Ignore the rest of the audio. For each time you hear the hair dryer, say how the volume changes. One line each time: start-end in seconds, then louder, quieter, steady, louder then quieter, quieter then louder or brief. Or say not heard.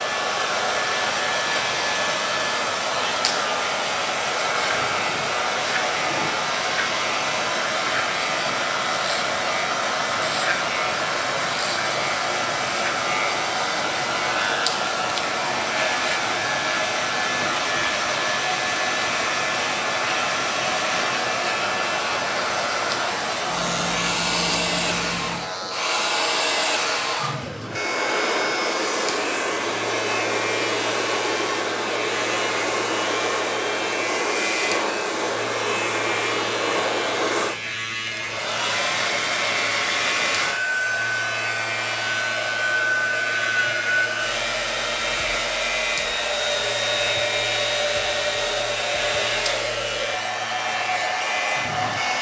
0.0-52.1 steady.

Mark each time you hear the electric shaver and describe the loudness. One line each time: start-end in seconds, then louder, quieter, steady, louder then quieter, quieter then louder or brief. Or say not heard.
0.0-52.1 steady.